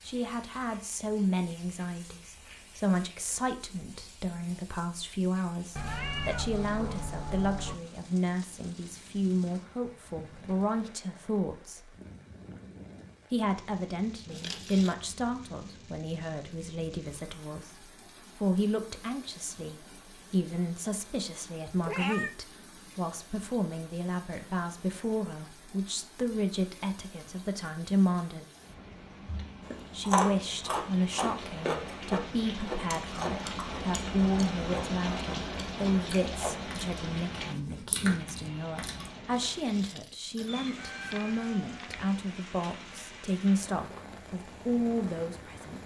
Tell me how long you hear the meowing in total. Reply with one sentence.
You can hear the meowing for 4 seconds altogether.